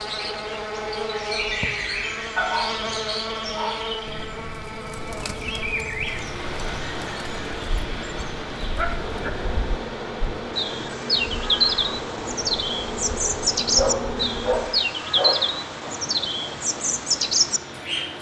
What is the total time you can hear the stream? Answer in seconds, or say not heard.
12 s.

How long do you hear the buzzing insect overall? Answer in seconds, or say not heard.
15 s.